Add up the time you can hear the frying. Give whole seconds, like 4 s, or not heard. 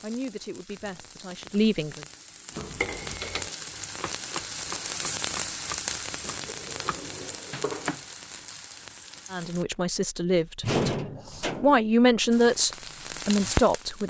11 s.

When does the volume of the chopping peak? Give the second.
8 s.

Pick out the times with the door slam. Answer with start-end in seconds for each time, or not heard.
10.6-11.8.